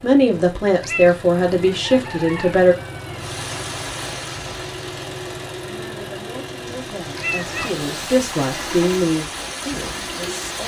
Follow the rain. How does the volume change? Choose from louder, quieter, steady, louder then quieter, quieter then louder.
quieter then louder.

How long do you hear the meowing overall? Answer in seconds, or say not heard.
2 s.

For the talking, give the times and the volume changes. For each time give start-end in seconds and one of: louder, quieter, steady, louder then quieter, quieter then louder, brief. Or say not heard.
0.0-2.8 brief
5.6-10.6 louder then quieter.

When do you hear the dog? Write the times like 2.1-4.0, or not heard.
not heard.